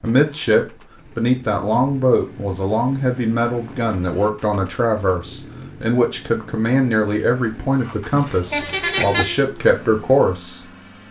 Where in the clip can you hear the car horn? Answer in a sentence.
The car horn can be heard from 8.1 to 9.4 s.